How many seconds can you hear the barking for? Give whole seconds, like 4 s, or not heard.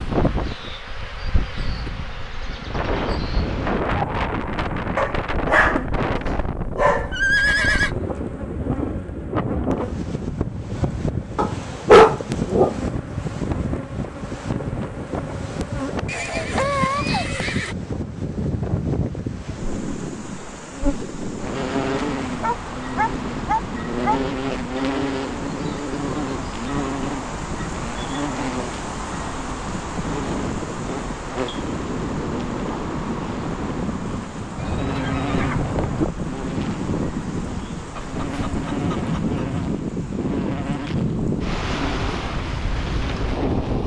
7 s.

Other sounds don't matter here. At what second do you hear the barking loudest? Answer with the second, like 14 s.
12 s.